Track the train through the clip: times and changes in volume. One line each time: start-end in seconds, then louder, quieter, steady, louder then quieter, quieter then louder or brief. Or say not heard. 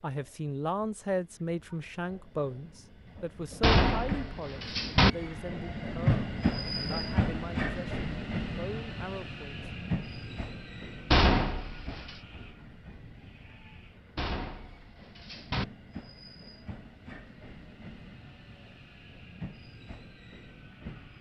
0.1-21.1 louder then quieter.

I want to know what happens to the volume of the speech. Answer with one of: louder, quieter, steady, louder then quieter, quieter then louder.
quieter.